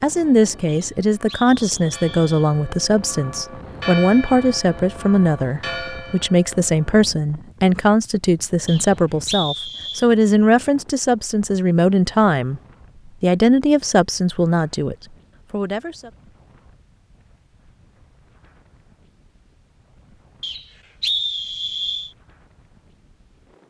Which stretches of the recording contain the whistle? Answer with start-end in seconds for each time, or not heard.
0.7-2.3, 8.7-10.1, 20.4-22.1.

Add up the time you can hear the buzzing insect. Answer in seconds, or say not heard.
not heard.